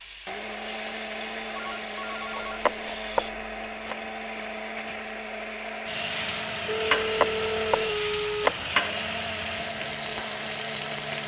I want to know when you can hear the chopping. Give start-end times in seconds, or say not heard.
2.4-4.0, 6.9-8.7.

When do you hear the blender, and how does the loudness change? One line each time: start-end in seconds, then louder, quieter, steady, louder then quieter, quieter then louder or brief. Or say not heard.
0.2-11.2 steady.